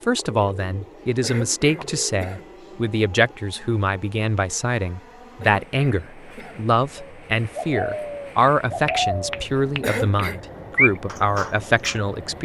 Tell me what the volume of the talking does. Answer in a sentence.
The volume of the talking stays about the same.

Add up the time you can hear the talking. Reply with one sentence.
You can hear the talking for 12 seconds altogether.